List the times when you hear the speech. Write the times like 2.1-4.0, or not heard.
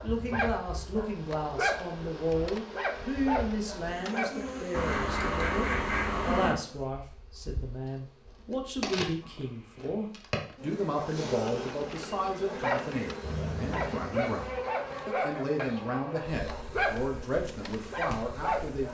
0.0-18.8.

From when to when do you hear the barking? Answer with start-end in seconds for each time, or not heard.
0.0-4.5, 10.9-18.8.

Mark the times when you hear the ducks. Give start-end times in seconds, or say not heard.
4.7-6.5, 13.2-15.8.